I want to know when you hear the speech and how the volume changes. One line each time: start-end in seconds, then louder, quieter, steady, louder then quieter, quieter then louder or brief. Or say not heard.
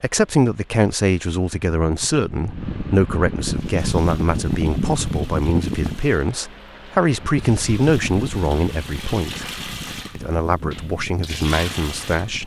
0.0-9.5 steady
10.2-12.4 brief.